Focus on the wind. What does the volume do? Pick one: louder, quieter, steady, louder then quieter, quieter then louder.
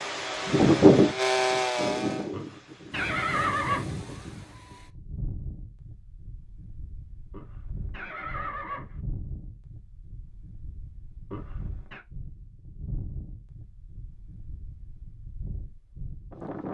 quieter.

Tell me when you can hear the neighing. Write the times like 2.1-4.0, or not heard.
2.3-4.0, 7.3-9.0, 11.3-12.1.